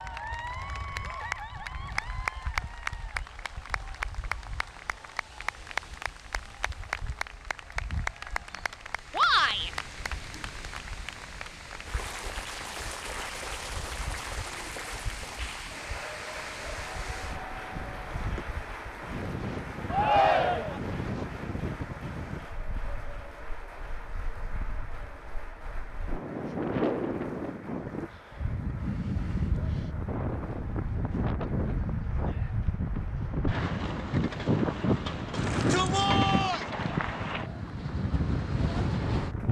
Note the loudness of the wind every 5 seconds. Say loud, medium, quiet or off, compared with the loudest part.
quiet, quiet, quiet, medium, medium, loud, loud, loud.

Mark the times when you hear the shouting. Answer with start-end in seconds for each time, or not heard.
9.1-9.7, 19.9-20.8, 35.3-36.6.